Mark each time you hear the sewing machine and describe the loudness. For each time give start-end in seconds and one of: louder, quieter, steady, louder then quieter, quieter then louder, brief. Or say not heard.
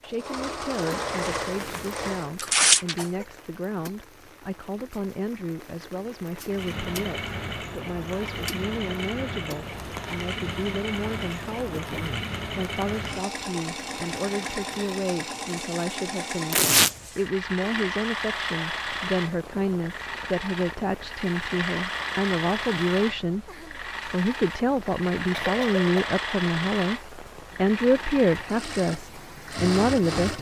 0.0-2.3 brief
6.5-30.3 steady.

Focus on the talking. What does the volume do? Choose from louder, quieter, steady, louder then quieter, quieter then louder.
louder.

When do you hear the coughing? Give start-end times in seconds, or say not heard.
2.4-3.2, 11.7-12.3, 25.3-26.1.